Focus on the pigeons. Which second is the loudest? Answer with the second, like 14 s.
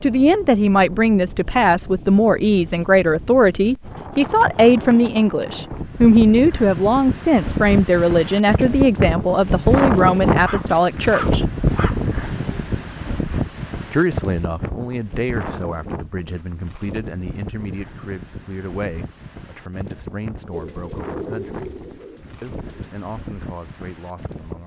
21 s.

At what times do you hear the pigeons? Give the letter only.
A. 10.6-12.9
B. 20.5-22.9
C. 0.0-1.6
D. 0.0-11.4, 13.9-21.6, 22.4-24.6
B.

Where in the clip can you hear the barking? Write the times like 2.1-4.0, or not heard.
10.4-12.0.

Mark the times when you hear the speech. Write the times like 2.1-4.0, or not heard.
0.0-11.4, 13.9-21.6, 22.4-24.6.